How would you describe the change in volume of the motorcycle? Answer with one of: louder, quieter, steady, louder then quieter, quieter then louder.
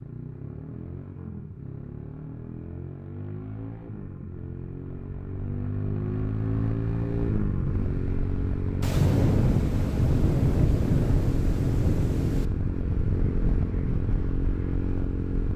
louder.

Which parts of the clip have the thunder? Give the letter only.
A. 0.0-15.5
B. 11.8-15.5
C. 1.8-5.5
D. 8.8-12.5
D.